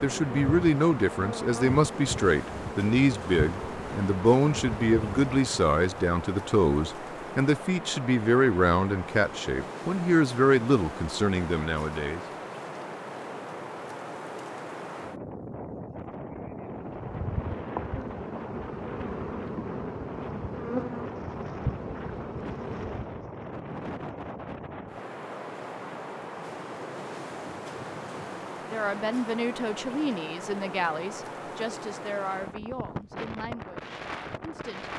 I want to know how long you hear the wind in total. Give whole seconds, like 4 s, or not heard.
35 s.